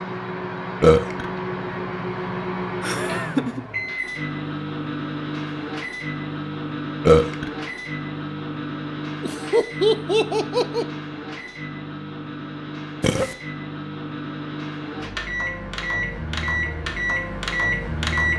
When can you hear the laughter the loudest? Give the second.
10 s.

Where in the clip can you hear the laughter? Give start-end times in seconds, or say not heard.
2.8-3.6, 9.2-10.8.